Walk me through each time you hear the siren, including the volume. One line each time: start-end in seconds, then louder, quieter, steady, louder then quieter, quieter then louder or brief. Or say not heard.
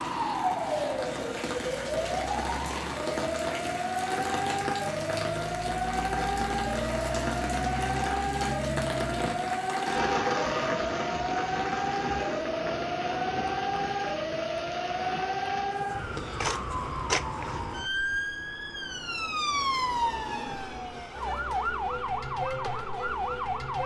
0.0-23.8 steady.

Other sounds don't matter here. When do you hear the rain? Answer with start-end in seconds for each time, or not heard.
0.0-16.1.